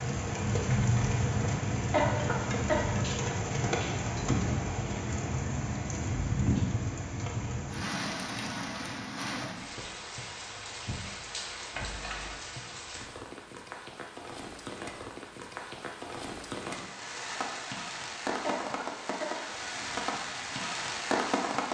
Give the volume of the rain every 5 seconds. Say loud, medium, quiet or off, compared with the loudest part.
loud, loud, medium, medium, loud.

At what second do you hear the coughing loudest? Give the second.
2 s.